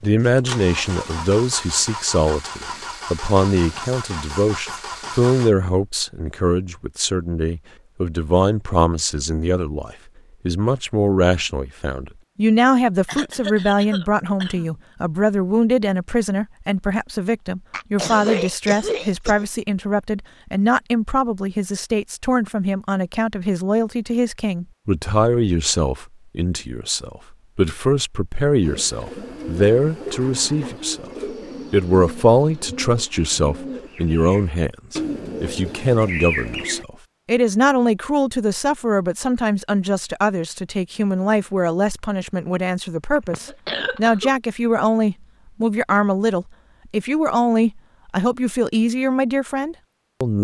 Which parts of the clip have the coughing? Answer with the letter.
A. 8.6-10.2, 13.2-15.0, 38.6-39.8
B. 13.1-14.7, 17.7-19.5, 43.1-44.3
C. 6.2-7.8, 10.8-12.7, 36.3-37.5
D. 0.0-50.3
B.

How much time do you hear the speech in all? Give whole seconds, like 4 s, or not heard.
50 s.